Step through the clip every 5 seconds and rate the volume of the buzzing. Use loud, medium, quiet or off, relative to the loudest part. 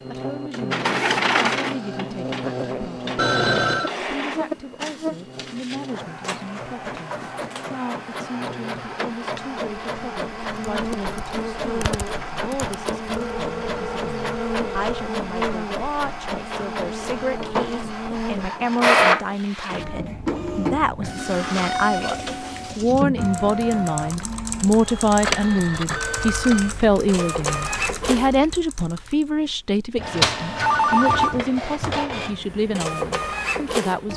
loud, medium, loud, loud, off, off, off.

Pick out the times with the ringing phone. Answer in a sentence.
The ringing phone can be heard from 3.1 to 4.0 s, from 13.1 to 15.1 s and from 30.6 to 32.0 s.